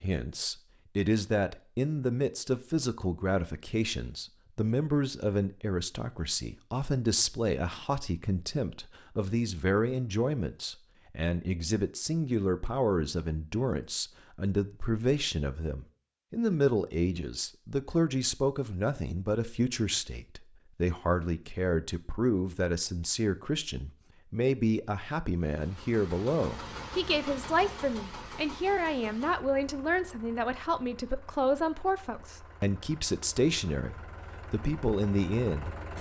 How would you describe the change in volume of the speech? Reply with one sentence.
The loudness of the speech stays about the same.